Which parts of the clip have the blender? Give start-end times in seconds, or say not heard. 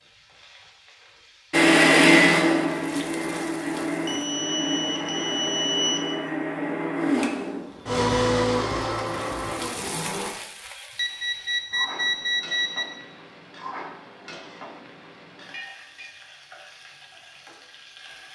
1.5-10.3.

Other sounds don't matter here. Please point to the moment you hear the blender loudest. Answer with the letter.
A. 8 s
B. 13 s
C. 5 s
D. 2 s
D.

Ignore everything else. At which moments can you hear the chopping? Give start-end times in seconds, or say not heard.
not heard.